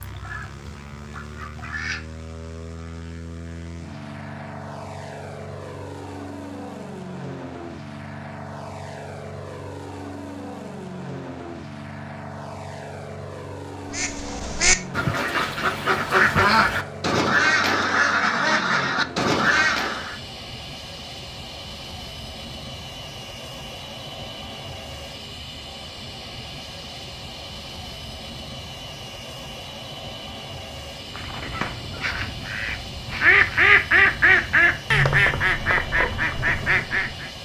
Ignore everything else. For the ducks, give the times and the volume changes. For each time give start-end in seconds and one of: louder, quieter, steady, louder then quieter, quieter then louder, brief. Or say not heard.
0.0-2.0 brief
13.9-20.1 steady
31.1-37.3 louder then quieter.